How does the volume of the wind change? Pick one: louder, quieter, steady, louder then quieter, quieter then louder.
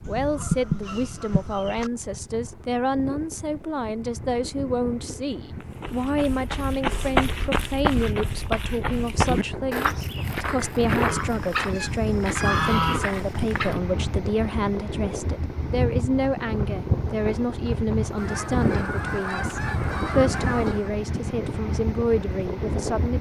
louder.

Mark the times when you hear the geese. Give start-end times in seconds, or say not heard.
0.1-1.9, 11.1-13.8, 18.1-20.9.